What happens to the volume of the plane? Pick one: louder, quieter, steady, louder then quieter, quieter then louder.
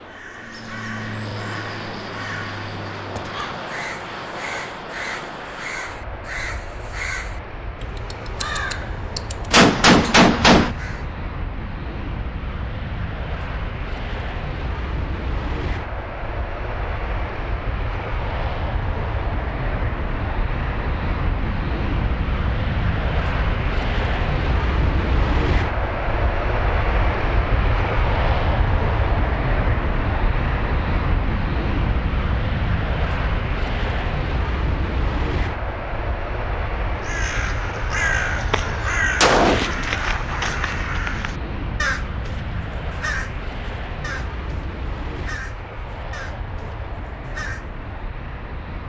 louder then quieter.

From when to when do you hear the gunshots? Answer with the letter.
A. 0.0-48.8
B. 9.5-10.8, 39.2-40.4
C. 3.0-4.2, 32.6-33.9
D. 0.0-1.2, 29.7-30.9
B.